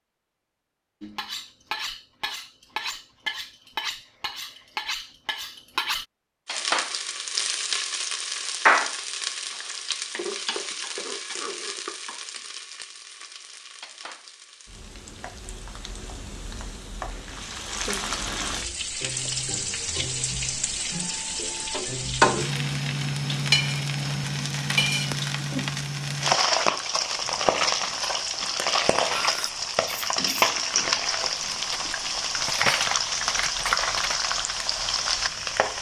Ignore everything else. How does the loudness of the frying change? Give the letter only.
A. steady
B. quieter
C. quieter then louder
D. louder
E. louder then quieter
C.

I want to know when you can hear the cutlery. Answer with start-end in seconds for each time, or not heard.
1.0-6.0, 29.1-34.1.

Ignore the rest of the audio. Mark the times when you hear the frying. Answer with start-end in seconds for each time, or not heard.
6.5-35.7.